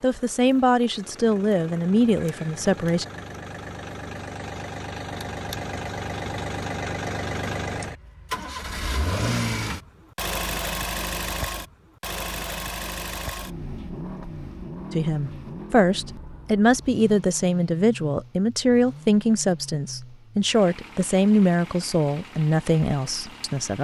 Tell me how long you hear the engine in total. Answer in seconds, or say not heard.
24 s.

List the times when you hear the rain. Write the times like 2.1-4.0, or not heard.
not heard.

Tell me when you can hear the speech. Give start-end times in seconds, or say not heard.
0.0-3.0, 14.9-23.7.